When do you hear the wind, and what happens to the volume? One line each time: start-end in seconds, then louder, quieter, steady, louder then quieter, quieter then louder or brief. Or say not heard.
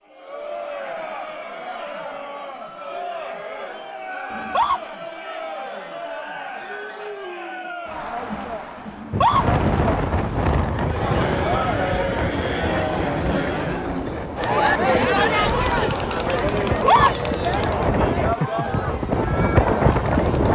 9.1-20.5 quieter then louder.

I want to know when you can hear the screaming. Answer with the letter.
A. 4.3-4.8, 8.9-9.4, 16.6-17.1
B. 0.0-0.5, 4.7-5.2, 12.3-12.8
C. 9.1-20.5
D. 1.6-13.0
A.